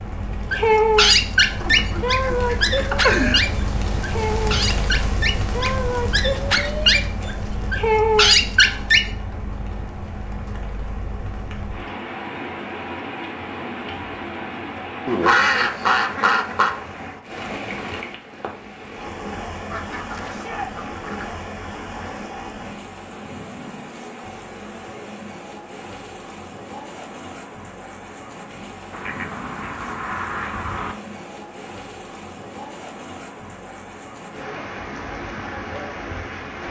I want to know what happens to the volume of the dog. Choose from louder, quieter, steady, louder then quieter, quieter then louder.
quieter then louder.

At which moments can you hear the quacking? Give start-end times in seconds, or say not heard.
1.6-3.4, 15.1-16.8, 19.6-21.4, 28.9-30.9.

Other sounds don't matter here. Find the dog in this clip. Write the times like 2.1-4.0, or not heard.
0.5-9.1.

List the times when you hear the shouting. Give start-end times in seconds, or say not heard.
20.2-20.7.